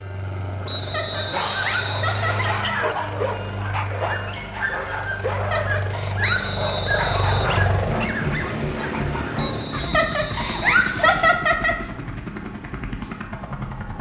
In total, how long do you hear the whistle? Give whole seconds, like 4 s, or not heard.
5 s.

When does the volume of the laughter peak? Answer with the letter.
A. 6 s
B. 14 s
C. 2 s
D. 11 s
D.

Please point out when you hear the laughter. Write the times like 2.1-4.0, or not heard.
0.8-2.8, 5.4-6.5, 9.8-11.8.